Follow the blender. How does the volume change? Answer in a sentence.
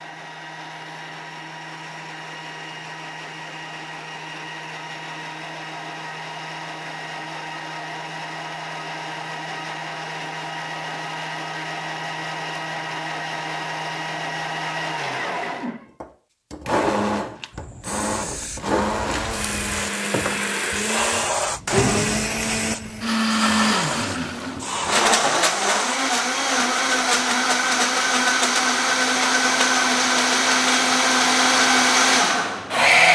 The volume of the blender goes up.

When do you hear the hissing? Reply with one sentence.
The hissing can be heard from 17.5 to 26.0 s.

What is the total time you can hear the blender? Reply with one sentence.
You can hear the blender for 33 seconds altogether.